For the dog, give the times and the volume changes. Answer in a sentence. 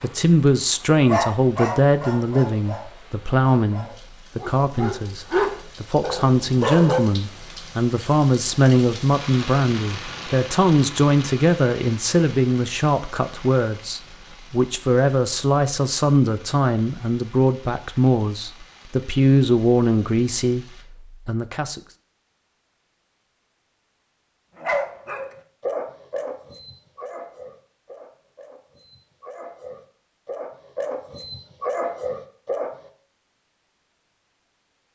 The dog can be heard from 0.0 to 7.0 s, getting quieter then louder; and from 24.6 to 32.9 s, getting quieter then louder.